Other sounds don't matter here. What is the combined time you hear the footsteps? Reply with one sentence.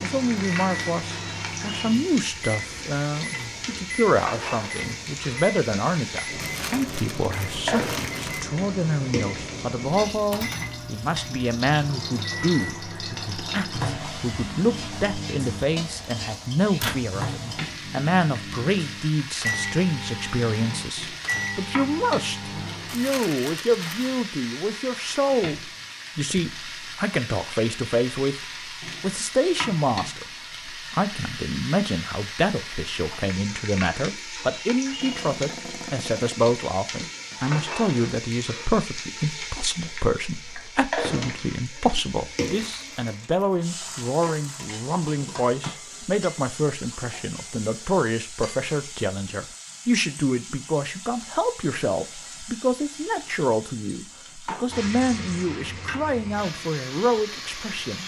The footsteps can't be heard in this clip.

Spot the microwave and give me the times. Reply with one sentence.
You can hear the microwave from 0.0 to 23.2 s.